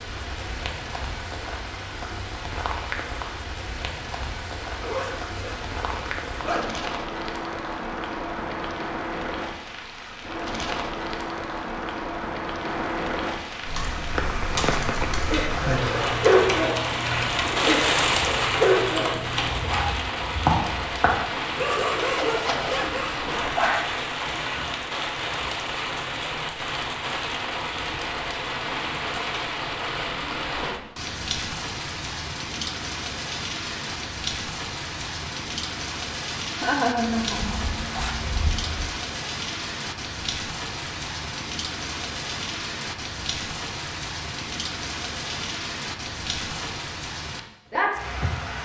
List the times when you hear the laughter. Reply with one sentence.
The laughter can be heard from 36.5 to 37.8 s.